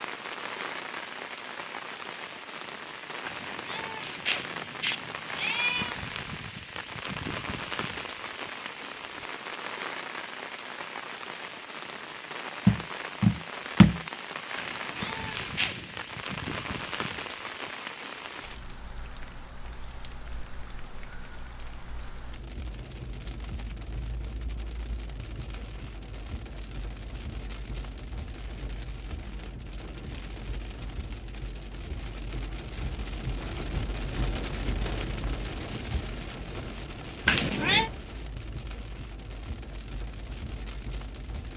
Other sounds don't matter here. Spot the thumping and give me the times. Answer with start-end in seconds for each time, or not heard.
12.7-14.0.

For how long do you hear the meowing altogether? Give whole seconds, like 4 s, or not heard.
5 s.